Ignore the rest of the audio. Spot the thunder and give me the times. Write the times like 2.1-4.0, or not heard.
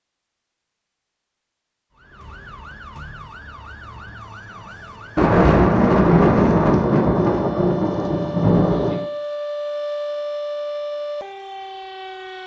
5.2-9.0.